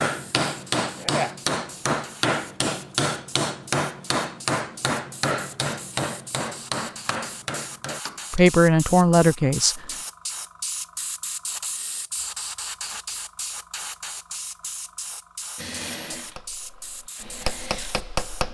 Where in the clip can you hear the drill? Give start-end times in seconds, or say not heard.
15.6-18.4.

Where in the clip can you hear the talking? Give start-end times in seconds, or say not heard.
8.3-9.9.